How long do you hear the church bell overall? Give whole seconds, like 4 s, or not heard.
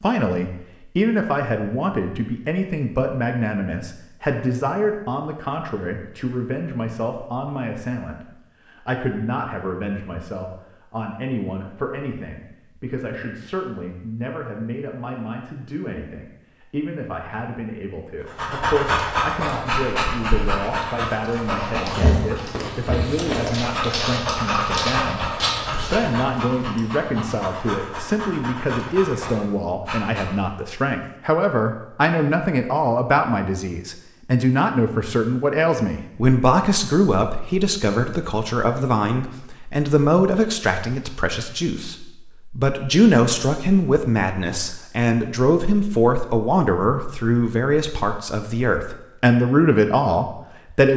not heard.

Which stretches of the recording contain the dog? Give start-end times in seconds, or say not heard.
18.2-30.4.